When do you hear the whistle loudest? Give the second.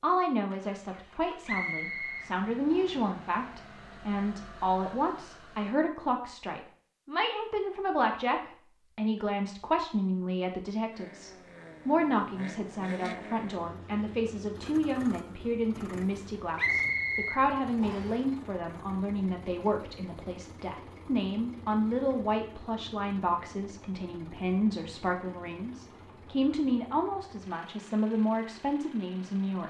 17 s.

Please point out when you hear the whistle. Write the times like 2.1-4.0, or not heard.
1.4-3.0, 16.6-18.1.